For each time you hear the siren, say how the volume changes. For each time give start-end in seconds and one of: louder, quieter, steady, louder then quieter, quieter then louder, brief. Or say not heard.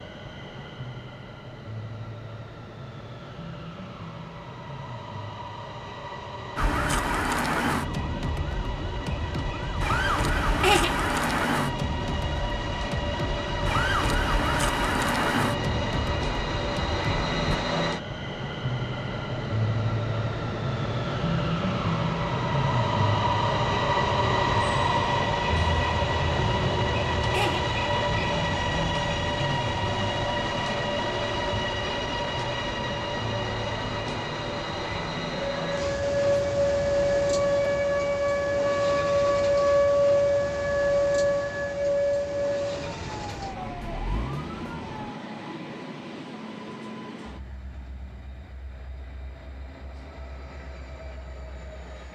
6.5-17.6 steady
35.3-45.1 quieter.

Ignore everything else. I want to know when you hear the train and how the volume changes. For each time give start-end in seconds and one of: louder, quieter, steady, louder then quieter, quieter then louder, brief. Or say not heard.
0.0-52.1 louder then quieter.